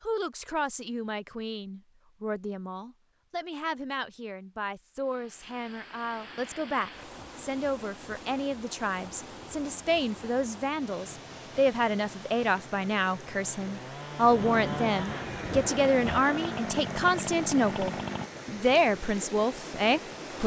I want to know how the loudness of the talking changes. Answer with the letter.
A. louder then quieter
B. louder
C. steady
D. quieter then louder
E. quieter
B.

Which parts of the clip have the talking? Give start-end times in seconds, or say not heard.
0.0-20.4.